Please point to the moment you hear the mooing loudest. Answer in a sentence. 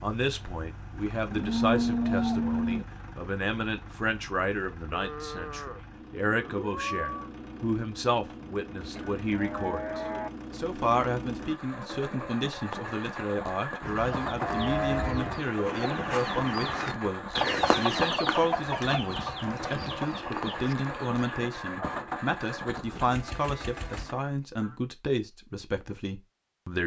The loudest moment of the mooing is at 2 seconds.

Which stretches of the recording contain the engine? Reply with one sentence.
The engine can be heard from 0.0 to 24.1 s.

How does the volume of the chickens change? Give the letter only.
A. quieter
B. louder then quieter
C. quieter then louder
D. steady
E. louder
B.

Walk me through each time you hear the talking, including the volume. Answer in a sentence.
You can hear the talking from 0.0 to 26.8 s, at a steady volume.